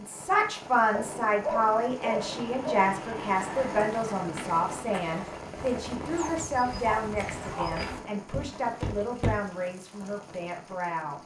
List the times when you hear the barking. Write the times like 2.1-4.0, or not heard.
0.9-3.8, 6.2-7.8.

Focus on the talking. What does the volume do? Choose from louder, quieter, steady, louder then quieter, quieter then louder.
quieter.